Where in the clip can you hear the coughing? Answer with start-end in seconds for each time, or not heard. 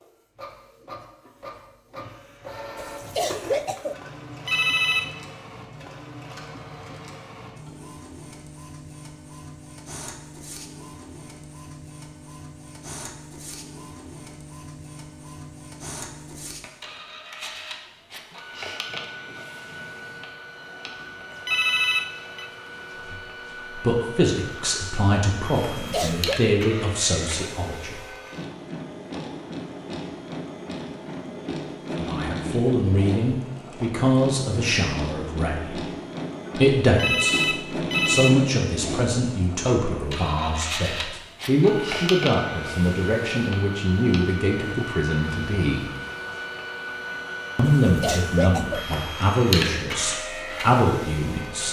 2.8-4.0, 25.7-26.4, 47.6-48.9.